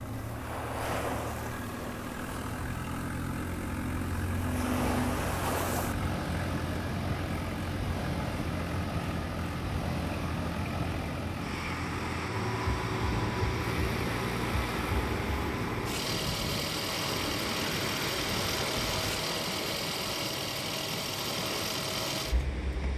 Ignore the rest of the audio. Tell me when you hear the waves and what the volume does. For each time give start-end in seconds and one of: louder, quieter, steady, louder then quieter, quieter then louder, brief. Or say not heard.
0.0-22.9 steady.